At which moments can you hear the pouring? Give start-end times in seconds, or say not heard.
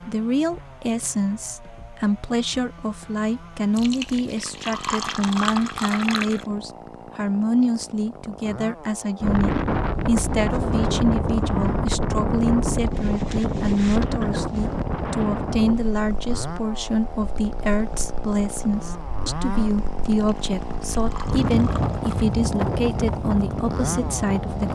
3.8-6.5, 20.0-22.4.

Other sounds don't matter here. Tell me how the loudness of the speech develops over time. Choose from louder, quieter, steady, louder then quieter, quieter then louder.
steady.